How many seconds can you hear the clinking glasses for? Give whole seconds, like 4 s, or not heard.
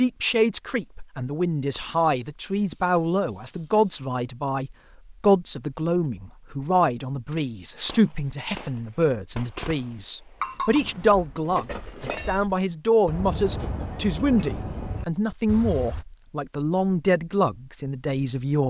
2 s.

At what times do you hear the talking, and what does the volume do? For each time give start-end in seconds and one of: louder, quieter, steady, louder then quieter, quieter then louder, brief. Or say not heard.
0.0-18.6 steady.